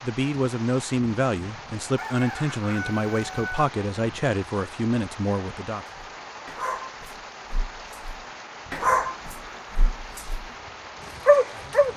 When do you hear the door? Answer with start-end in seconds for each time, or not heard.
not heard.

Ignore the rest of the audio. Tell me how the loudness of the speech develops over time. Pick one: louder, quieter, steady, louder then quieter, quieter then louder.
steady.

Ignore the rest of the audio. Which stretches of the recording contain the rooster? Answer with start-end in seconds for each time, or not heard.
1.9-3.7.